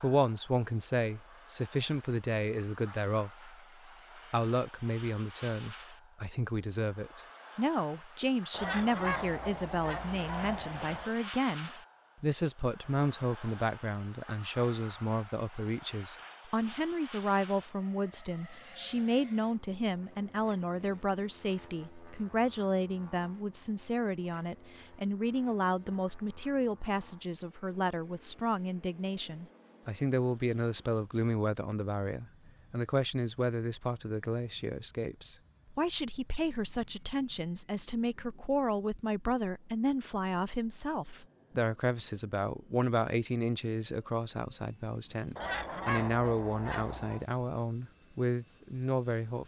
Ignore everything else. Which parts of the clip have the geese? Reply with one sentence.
You can hear the geese from 8.5 to 11.2 s and from 45.4 to 47.2 s.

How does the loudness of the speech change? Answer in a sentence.
The loudness of the speech stays about the same.